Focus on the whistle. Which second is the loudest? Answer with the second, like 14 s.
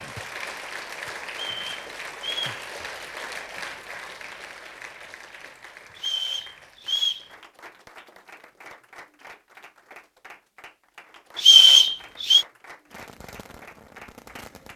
12 s.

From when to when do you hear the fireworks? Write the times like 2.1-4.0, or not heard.
12.8-14.7.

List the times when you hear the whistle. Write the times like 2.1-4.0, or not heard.
1.3-2.6, 6.0-7.2, 11.3-12.4.